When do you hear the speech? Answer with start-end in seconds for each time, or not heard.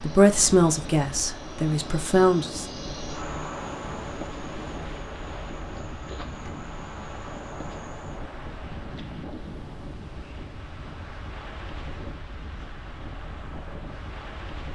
0.0-2.6.